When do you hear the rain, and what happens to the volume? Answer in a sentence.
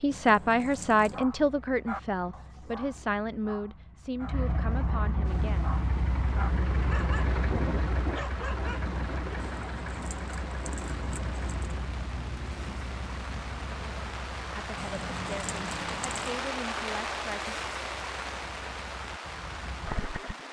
The rain can be heard from 5.2 to 20.4 s, getting louder.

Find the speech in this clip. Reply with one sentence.
The speech can be heard from 0.0 to 5.7 s and from 14.5 to 17.6 s.